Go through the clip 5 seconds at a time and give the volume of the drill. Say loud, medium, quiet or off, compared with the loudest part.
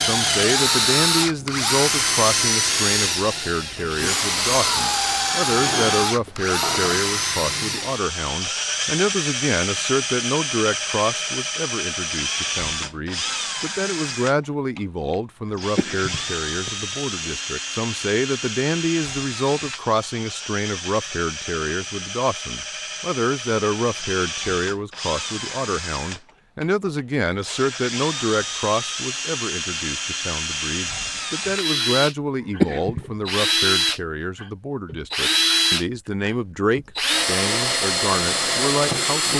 loud, loud, medium, medium, medium, medium, loud, loud.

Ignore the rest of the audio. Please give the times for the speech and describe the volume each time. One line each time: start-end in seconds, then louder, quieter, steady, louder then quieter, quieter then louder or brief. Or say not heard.
0.0-39.3 steady.